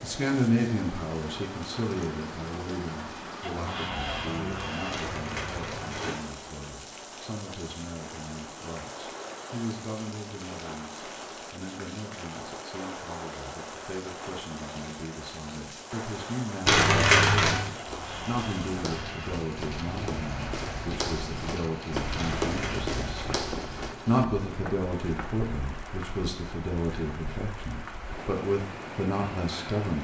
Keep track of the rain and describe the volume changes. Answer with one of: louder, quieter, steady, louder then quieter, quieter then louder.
steady.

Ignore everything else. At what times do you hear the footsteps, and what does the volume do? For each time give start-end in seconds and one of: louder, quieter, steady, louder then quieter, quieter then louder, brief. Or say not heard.
17.9-25.3 louder then quieter.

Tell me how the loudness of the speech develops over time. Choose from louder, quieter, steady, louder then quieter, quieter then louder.
quieter then louder.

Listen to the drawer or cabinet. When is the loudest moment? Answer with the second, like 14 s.
4 s.